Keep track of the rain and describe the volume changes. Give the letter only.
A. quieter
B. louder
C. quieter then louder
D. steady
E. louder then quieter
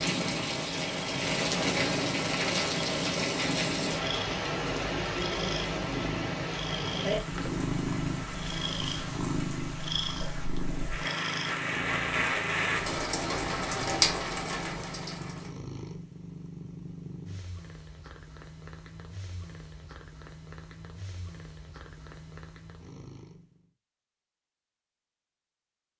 C.